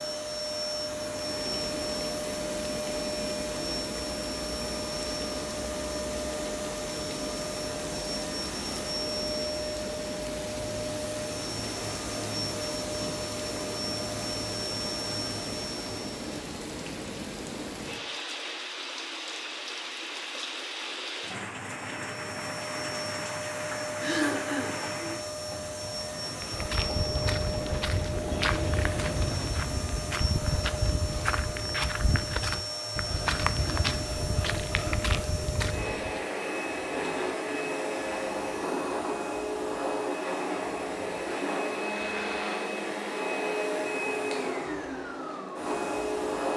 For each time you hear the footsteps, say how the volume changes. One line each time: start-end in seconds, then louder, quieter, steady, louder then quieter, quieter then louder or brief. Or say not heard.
26.4-36.2 steady.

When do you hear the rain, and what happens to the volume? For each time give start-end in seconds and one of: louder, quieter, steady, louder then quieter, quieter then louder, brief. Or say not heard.
0.0-29.6 steady.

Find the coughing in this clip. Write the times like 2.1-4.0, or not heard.
23.9-24.8.